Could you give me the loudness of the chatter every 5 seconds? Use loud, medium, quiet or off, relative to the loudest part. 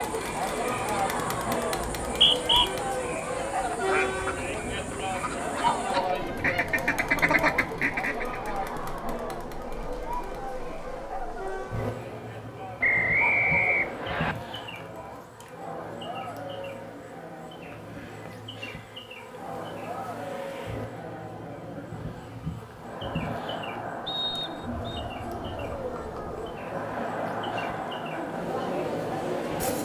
loud, loud, medium, medium, medium, loud.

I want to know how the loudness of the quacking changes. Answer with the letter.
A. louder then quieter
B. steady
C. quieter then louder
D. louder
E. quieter
D.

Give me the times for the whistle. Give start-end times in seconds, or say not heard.
2.0-2.7, 12.8-14.3, 24.1-25.0.